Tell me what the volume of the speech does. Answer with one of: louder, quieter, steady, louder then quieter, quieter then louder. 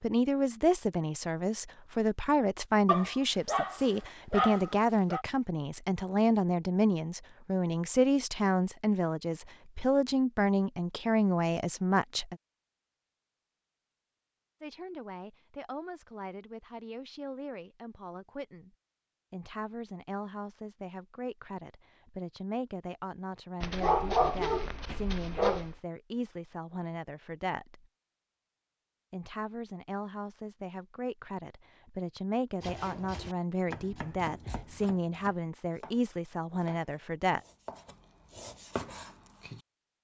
quieter then louder.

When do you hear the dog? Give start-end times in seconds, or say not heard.
2.9-5.2, 23.6-25.8.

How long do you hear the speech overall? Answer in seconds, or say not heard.
34 s.